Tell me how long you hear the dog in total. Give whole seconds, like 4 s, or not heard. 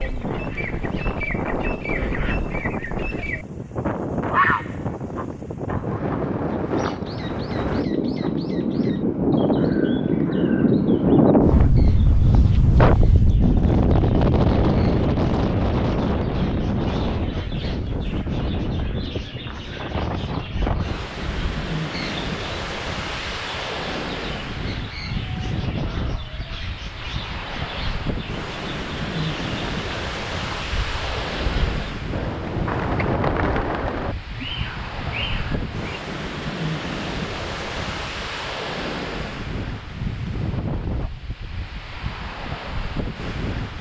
not heard.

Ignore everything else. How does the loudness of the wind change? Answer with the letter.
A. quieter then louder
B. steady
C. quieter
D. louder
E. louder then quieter
E.